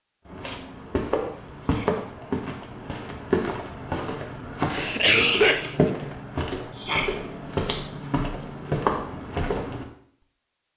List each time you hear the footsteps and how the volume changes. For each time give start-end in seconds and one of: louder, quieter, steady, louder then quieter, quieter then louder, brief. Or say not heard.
0.2-9.8 steady.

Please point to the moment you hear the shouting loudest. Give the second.
7 s.